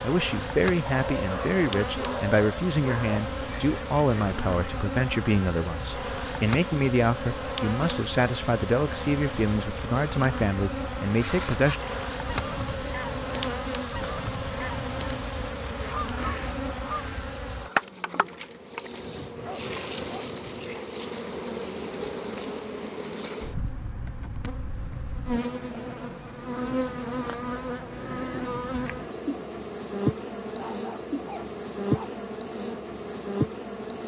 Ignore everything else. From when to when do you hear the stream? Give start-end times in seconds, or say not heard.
not heard.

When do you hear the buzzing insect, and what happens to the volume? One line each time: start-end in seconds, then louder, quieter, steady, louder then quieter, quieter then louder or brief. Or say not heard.
0.0-34.0 steady.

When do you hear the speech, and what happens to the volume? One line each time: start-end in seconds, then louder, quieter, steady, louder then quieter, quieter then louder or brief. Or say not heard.
0.0-11.8 steady.